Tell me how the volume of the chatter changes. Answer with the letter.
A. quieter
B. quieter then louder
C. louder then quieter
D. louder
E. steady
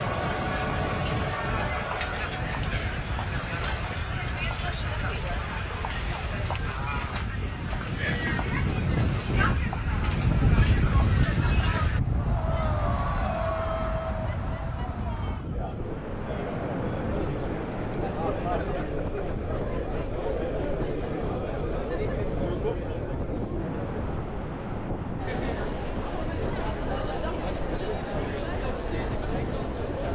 E.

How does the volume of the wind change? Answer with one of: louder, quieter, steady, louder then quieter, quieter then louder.
louder then quieter.